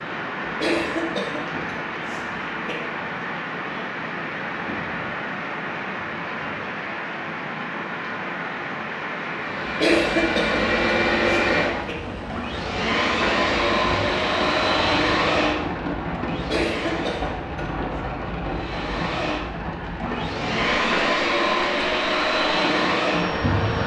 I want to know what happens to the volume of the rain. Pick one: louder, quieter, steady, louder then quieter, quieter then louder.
steady.